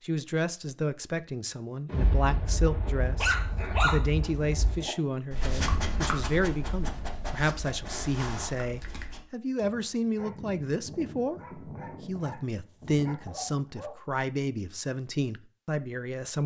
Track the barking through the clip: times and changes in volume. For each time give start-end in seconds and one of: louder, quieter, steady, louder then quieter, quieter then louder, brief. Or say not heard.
3.1-13.9 quieter.